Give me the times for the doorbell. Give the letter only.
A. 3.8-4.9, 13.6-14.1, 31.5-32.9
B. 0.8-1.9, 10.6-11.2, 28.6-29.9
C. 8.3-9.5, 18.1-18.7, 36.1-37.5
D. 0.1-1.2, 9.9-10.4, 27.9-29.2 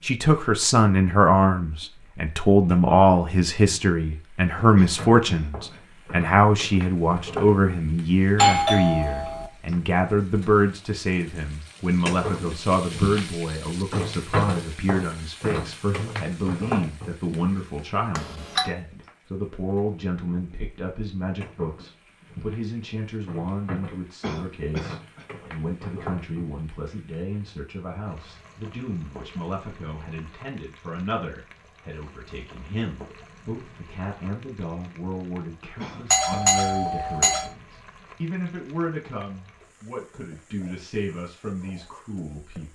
C.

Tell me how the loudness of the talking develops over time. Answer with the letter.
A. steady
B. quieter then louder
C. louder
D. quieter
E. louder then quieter
D.